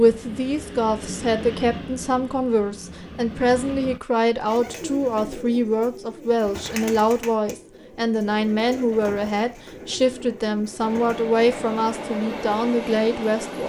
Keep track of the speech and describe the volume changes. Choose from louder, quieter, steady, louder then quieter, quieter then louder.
steady.